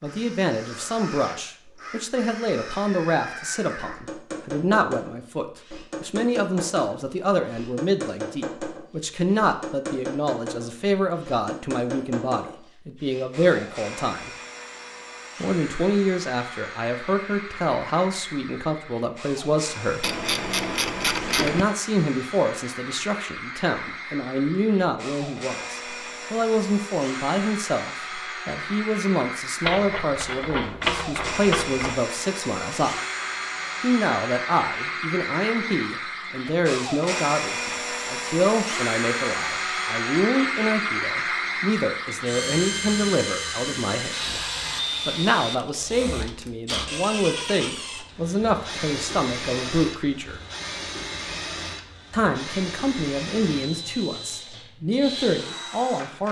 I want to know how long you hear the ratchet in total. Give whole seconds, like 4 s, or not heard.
4 s.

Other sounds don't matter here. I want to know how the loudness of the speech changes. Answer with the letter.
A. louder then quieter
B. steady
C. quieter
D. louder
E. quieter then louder
B.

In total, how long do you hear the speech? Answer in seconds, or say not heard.
51 s.